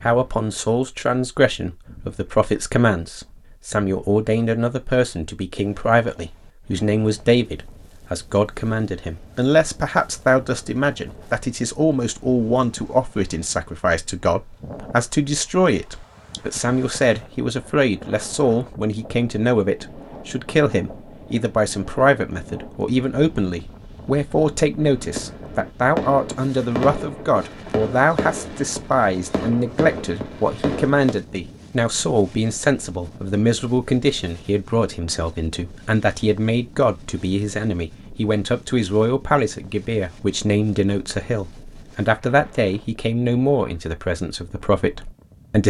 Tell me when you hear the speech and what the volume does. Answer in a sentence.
You can hear the speech from 0.0 to 45.6 s, at a steady volume.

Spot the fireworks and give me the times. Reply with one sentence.
The fireworks can be heard from 24.8 to 31.1 s.